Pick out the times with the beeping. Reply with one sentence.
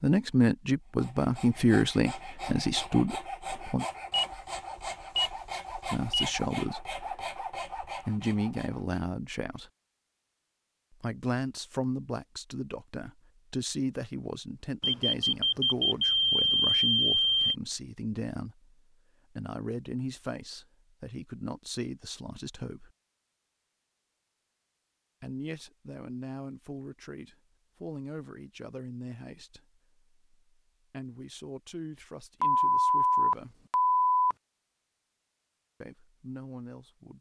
The beeping can be heard from 4.1 to 6.4 s, from 14.8 to 17.6 s and from 32.4 to 34.4 s.